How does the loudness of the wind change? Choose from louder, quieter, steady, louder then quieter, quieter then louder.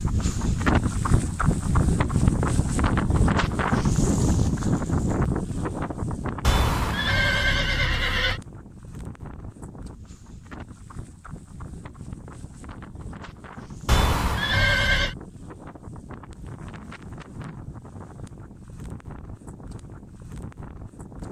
quieter.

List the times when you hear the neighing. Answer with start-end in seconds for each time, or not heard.
6.4-8.4, 13.8-15.2.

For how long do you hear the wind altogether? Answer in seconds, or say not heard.
21 s.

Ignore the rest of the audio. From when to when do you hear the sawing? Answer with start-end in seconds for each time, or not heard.
not heard.